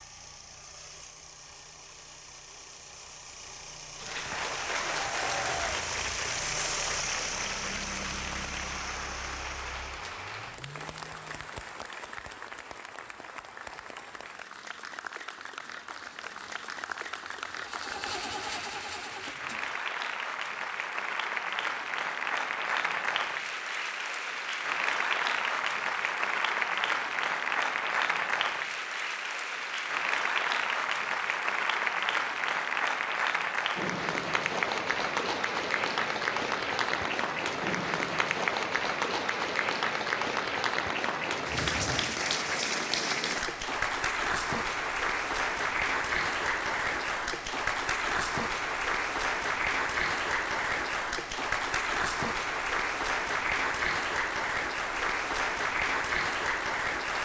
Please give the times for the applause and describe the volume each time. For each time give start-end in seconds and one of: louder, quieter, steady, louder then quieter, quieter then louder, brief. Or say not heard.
4.0-57.1 louder.